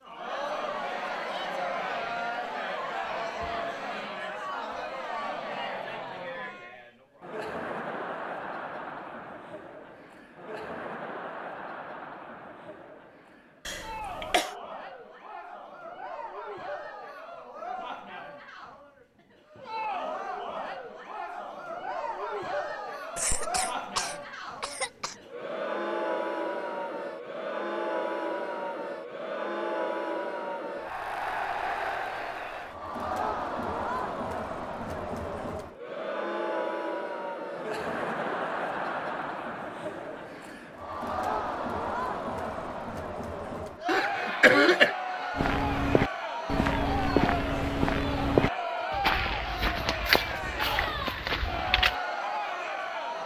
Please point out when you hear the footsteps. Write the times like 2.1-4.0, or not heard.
45.4-52.0.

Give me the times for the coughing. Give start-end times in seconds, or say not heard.
13.7-14.6, 23.1-25.1, 43.9-45.0.